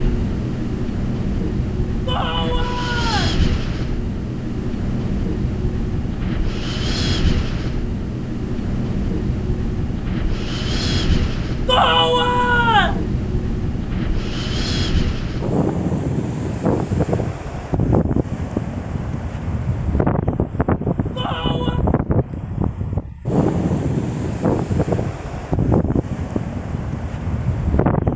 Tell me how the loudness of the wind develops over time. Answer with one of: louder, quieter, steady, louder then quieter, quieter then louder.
steady.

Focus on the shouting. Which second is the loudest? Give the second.
12 s.